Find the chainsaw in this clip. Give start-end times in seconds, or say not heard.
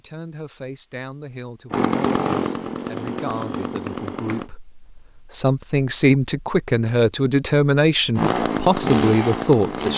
1.7-4.5, 8.2-9.9.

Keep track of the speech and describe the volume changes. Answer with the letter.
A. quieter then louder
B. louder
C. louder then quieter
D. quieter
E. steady
B.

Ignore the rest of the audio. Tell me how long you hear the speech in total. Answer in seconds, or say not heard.
10 s.